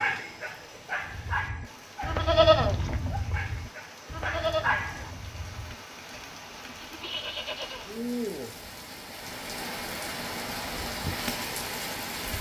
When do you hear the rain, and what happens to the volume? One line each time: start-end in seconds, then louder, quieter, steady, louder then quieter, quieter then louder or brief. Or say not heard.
0.0-12.3 louder.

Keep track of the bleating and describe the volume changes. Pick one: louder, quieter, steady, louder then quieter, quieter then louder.
quieter then louder.